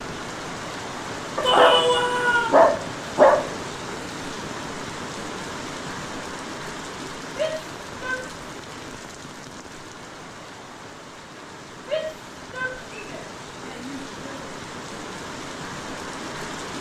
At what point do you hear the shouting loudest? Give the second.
2 s.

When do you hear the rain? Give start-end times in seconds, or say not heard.
0.0-16.7.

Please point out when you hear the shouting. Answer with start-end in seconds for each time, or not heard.
1.4-2.5, 7.2-8.2, 11.8-14.4.